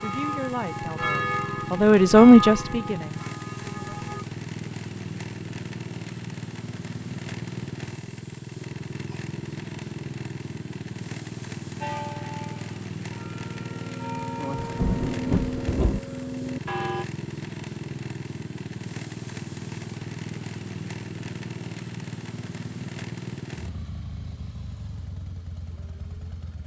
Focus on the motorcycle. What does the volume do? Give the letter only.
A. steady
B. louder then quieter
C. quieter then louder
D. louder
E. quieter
A.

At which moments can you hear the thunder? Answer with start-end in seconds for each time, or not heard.
14.6-16.0.